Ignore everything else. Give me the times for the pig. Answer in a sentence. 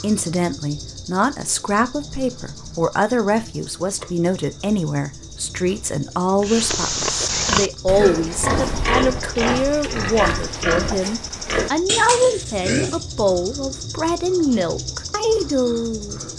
The pig can be heard from 6.4 to 13.0 s.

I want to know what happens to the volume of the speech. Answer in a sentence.
The volume of the speech stays about the same.